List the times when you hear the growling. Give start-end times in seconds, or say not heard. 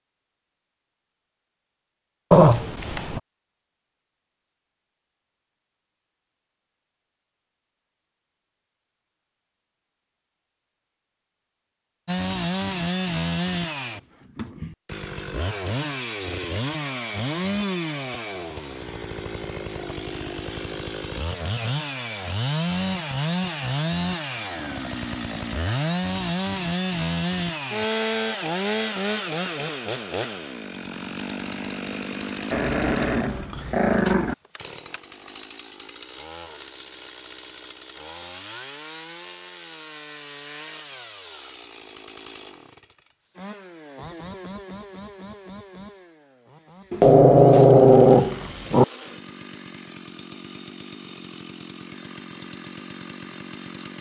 2.3-3.2, 32.5-34.4, 46.9-48.9.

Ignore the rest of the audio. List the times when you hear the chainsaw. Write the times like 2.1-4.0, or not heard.
12.1-53.9.